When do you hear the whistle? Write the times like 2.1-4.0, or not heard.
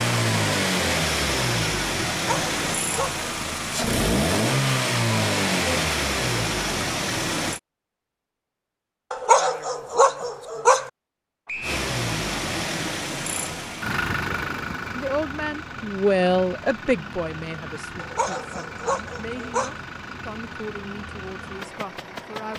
11.4-11.8.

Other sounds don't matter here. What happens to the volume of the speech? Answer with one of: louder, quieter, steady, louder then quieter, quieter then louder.
quieter.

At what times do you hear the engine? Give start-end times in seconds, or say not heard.
0.0-7.6, 11.6-22.5.